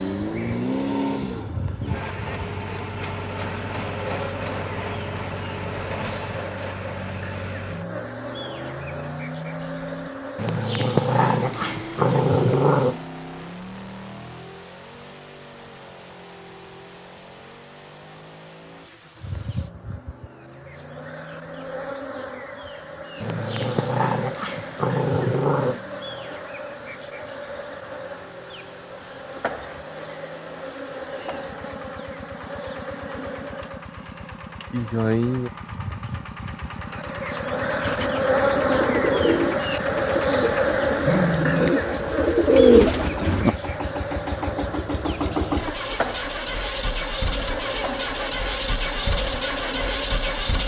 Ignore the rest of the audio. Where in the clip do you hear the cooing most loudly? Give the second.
43 s.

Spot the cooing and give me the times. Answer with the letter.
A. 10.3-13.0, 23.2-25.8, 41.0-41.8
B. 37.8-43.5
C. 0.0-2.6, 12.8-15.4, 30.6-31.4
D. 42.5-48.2
B.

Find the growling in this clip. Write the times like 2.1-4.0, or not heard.
10.3-13.0, 23.2-25.8, 41.0-41.8.